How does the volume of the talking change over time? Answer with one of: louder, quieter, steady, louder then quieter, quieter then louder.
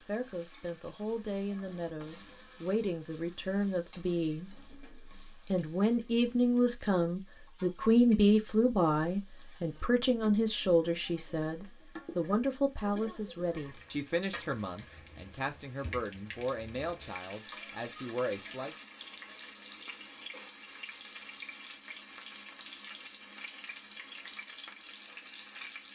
louder then quieter.